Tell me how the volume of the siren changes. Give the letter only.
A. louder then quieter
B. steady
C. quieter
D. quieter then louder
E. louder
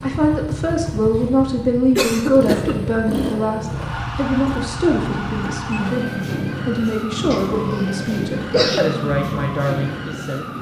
B.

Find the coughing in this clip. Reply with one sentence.
You can hear the coughing from 1.9 to 2.8 s and from 7.3 to 8.8 s.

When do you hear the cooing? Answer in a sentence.
The cooing can't be heard in this clip.